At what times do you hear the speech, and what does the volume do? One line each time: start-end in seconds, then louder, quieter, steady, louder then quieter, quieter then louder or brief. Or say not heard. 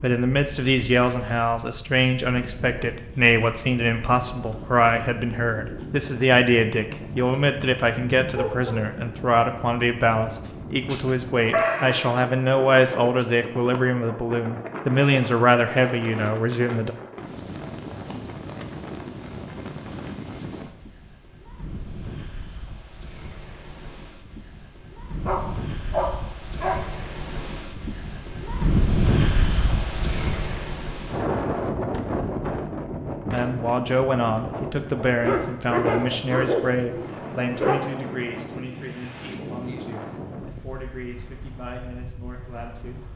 0.0-16.9 steady
33.2-43.0 quieter.